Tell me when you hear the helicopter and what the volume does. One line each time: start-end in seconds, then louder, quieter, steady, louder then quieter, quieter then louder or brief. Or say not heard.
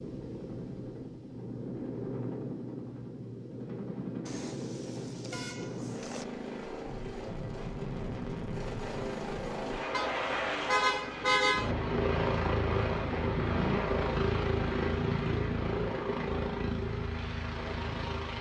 0.0-18.3 louder.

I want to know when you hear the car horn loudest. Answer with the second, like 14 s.
11 s.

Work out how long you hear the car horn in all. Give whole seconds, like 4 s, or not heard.
4 s.